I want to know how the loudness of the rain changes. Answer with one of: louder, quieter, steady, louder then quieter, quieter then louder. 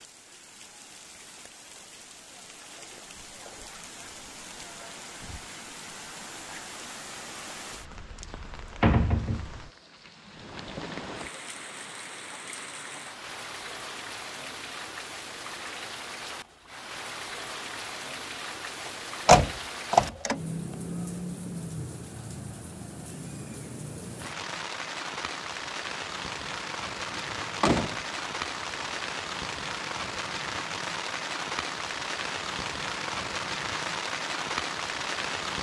louder.